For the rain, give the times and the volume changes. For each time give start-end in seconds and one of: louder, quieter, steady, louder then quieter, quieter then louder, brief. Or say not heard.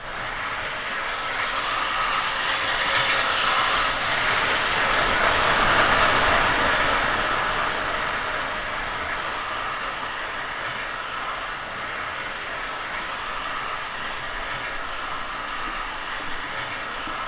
0.0-17.2 louder then quieter.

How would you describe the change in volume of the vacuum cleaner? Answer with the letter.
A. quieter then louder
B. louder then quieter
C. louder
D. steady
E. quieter
E.